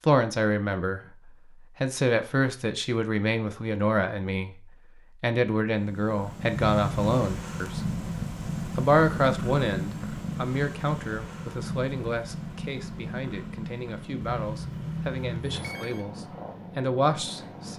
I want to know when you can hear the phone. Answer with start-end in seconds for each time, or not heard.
6.5-7.0, 14.2-16.1.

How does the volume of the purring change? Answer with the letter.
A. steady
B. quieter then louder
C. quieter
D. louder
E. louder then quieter
C.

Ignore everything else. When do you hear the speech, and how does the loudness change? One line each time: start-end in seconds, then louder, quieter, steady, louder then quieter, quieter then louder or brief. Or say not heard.
0.1-8.0 steady
8.8-17.7 quieter then louder.